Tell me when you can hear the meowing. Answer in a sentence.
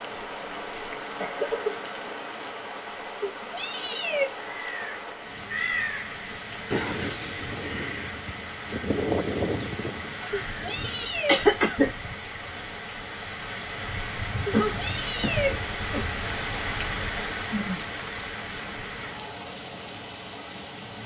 The meowing can be heard from 3.2 to 4.2 s, from 10.3 to 11.4 s and from 14.4 to 15.5 s.